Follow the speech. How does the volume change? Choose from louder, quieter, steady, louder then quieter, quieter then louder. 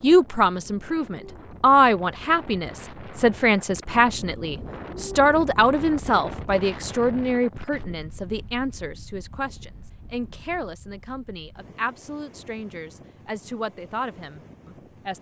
quieter.